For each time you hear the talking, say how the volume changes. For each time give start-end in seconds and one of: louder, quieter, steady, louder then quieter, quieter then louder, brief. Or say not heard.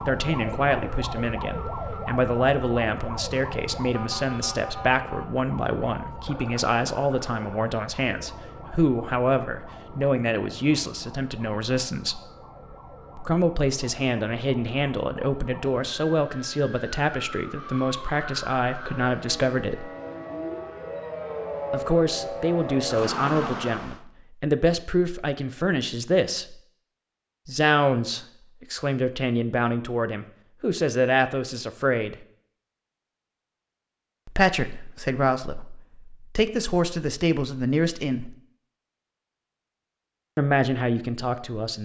0.0-12.2 steady
13.2-19.9 steady
21.7-26.6 steady
27.4-32.1 steady
34.2-38.4 quieter then louder
40.4-41.7 brief.